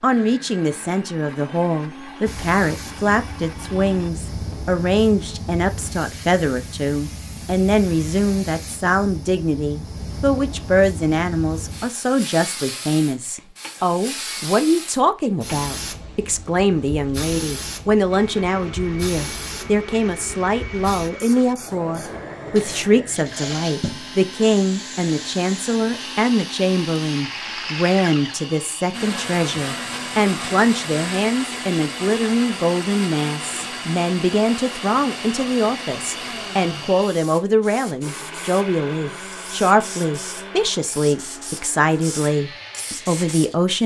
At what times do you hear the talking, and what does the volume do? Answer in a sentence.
The talking can be heard from 0.0 to 43.8 s, at a steady volume.